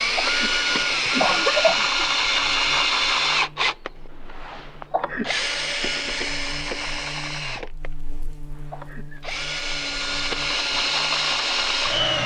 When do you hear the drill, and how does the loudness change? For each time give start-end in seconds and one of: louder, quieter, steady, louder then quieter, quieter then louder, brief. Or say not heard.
0.0-12.2 quieter then louder.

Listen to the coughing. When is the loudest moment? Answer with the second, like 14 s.
2 s.